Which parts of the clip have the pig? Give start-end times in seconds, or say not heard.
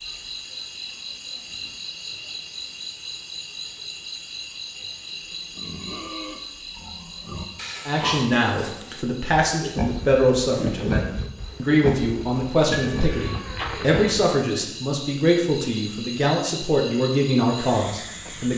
5.5-14.1.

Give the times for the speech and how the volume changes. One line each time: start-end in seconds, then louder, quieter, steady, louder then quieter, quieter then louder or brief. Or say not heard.
7.8-18.5 steady.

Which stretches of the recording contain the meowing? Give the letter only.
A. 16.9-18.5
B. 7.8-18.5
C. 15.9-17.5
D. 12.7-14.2
D.